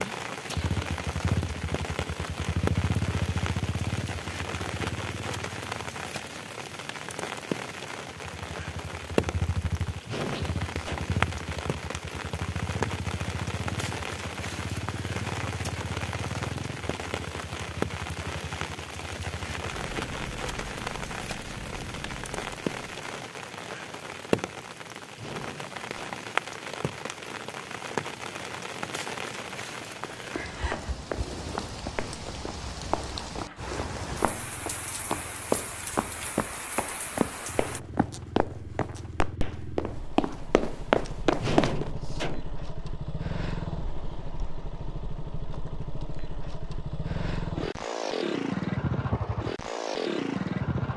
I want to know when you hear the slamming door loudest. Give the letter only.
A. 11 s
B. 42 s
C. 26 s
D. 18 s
B.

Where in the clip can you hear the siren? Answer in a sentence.
You can't hear the siren here.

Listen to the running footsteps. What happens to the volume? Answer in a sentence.
The loudness of the running footsteps goes up.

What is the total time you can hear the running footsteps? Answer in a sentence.
You can hear the running footsteps for 12 seconds altogether.